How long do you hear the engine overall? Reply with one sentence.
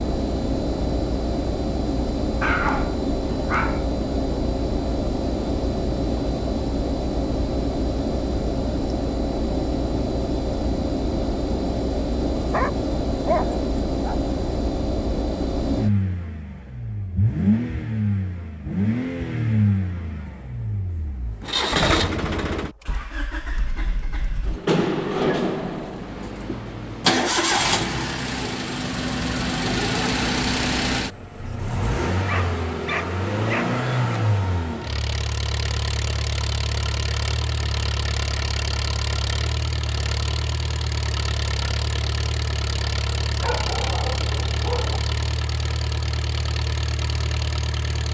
The engine can be heard for 48 seconds in total.